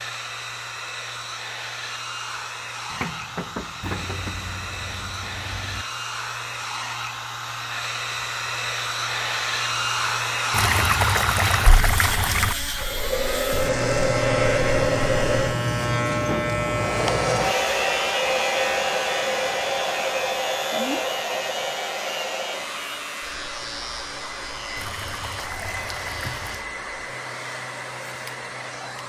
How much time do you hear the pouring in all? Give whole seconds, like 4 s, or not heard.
6 s.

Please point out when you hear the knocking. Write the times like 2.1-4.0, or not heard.
2.9-4.3.